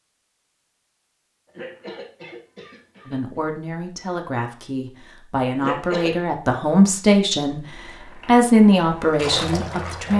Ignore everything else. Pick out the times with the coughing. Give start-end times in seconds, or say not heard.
1.4-3.4, 5.5-6.2.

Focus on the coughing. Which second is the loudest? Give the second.
6 s.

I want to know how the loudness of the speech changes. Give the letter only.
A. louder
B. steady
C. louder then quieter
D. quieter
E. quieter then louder
A.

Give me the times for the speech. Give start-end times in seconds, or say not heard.
3.0-10.1.